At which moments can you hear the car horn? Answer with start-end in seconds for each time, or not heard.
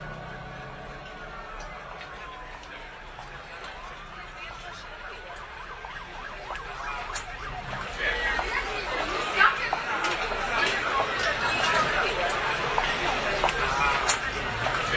not heard.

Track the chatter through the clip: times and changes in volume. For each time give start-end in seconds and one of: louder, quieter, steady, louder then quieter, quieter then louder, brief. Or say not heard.
0.0-14.9 louder.